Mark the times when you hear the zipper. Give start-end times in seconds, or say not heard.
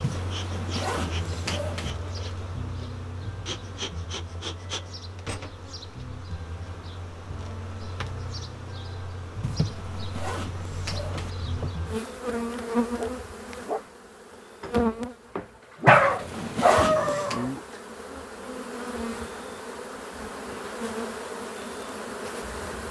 0.0-1.9, 9.4-11.3, 15.8-17.4.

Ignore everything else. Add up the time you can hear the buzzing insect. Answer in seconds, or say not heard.
23 s.